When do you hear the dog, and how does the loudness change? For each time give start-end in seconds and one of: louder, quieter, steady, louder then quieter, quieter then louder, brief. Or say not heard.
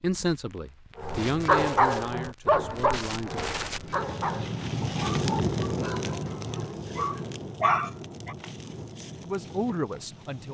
0.9-8.3 quieter then louder.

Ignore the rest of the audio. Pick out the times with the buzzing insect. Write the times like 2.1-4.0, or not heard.
not heard.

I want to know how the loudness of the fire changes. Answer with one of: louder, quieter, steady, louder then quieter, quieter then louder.
louder then quieter.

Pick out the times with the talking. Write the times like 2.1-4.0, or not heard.
0.0-3.4, 9.2-10.4.